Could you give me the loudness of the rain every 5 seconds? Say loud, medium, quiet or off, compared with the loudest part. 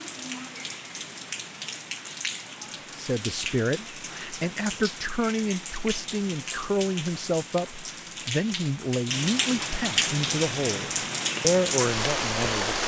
medium, medium, loud.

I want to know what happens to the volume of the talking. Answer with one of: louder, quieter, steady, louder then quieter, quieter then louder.
steady.